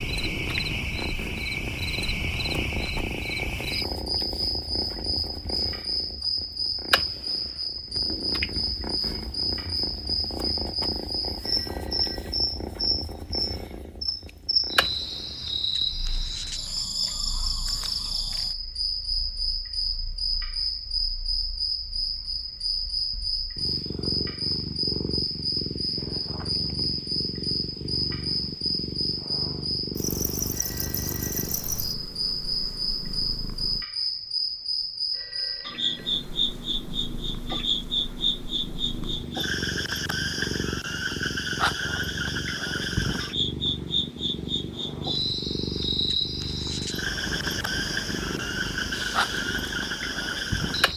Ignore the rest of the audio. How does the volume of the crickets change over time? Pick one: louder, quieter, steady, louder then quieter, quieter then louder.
steady.